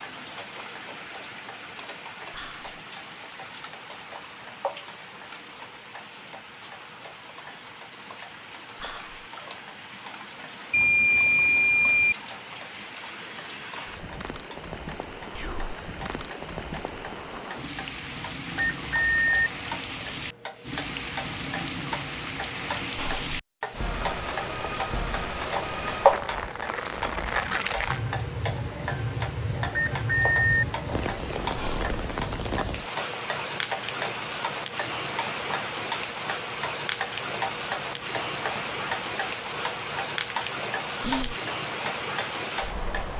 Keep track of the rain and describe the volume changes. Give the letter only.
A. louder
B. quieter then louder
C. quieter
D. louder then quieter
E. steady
A.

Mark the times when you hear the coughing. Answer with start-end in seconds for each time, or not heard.
not heard.